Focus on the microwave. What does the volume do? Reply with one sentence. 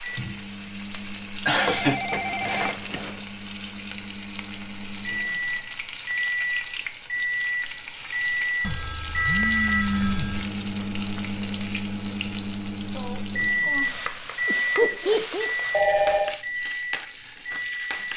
The volume of the microwave goes up.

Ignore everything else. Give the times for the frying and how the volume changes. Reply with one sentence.
You can hear the frying from 0.0 to 18.1 s, at a steady volume.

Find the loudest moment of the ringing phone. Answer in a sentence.
The loudest moment of the ringing phone is at 16 seconds.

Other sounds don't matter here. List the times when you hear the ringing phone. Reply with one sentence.
The ringing phone can be heard from 1.6 to 3.2 s, from 8.6 to 10.5 s and from 15.7 to 16.4 s.